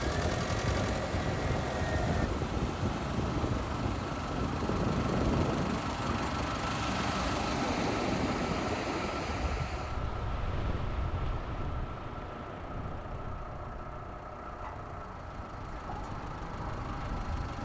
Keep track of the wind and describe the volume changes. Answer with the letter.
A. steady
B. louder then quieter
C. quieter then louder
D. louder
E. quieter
E.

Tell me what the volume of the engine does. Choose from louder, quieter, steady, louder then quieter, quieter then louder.
quieter.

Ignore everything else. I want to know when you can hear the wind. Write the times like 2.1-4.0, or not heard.
0.0-17.5.